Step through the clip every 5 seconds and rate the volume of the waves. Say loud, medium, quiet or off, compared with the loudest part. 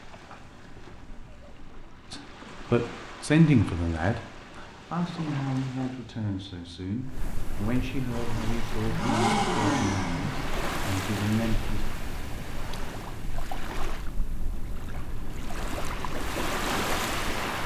quiet, medium, medium, loud.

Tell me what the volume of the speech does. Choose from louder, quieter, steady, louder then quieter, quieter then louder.
quieter.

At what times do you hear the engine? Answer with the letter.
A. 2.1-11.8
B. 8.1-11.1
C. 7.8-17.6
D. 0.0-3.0
B.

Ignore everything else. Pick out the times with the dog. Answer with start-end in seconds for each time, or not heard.
not heard.